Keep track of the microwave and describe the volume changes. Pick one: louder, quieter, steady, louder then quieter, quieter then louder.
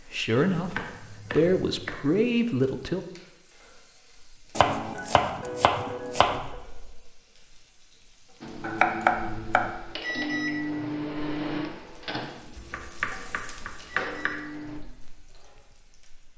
louder then quieter.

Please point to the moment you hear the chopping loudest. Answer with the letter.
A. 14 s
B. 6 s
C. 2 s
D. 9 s
D.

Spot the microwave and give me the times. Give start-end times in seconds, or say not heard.
8.4-14.8.